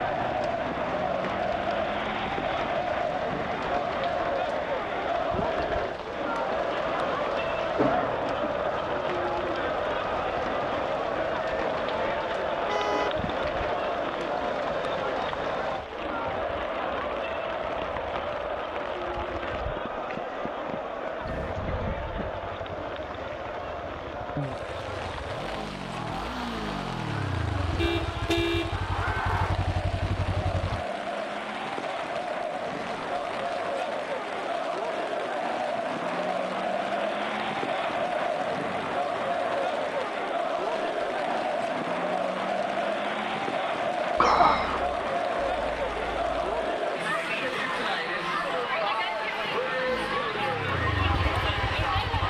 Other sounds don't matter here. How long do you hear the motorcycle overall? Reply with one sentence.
The motorcycle can be heard for 12 seconds in total.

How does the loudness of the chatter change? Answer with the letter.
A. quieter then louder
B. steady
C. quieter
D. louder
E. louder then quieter
A.